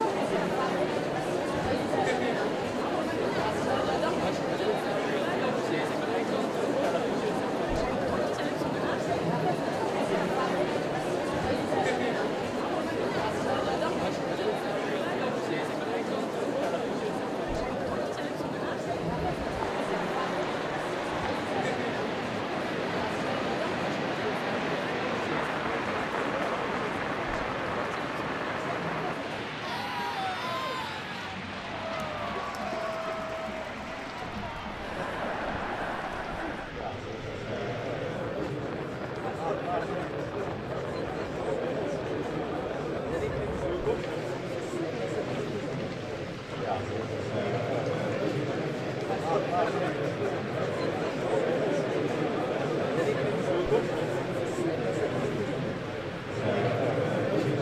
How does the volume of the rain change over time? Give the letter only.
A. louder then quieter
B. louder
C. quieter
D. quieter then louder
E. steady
C.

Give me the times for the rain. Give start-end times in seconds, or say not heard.
19.1-57.5.